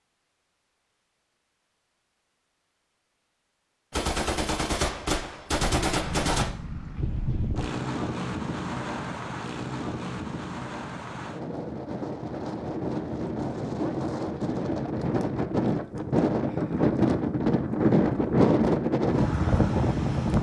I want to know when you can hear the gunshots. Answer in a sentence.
The gunshots can be heard from 3.9 to 6.5 s.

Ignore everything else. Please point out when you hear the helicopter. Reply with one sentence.
You can't hear the helicopter here.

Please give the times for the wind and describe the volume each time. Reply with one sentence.
You can hear the wind from 5.7 to 20.3 s, getting louder.